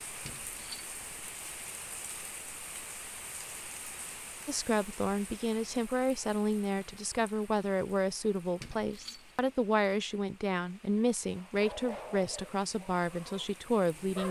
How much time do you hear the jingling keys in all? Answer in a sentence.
You can hear the jingling keys for 2 seconds altogether.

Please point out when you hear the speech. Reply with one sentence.
The speech can be heard from 4.5 to 14.2 s.